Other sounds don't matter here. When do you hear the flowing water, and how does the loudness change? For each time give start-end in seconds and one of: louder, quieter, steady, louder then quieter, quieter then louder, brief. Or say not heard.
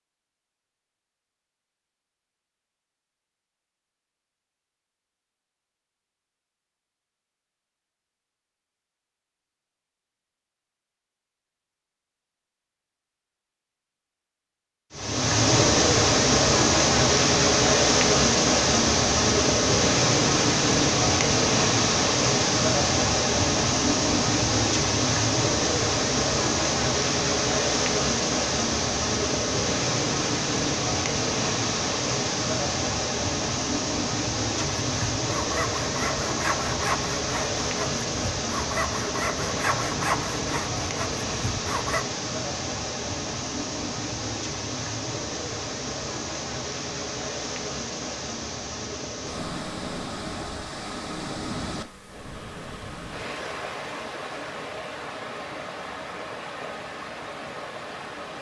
14.9-58.3 quieter.